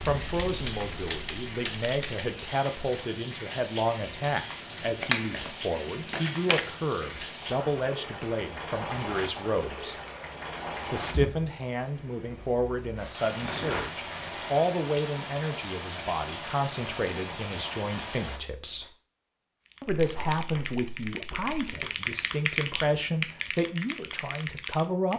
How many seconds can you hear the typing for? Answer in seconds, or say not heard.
8 s.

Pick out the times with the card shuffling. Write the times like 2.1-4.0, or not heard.
5.0-5.5, 6.1-6.6, 13.3-14.5, 19.9-21.9.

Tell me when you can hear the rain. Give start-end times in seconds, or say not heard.
0.0-18.9.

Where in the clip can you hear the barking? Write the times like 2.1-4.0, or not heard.
not heard.